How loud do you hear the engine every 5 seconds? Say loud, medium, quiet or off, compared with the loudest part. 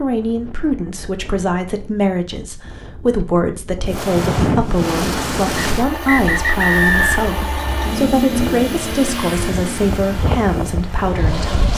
off, loud, medium.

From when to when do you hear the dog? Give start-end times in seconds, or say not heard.
not heard.